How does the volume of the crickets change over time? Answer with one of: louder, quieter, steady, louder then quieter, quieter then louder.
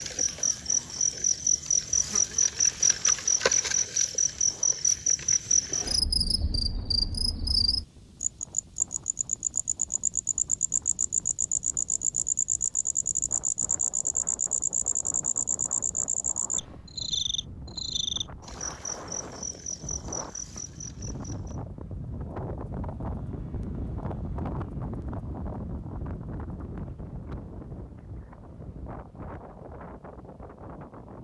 quieter.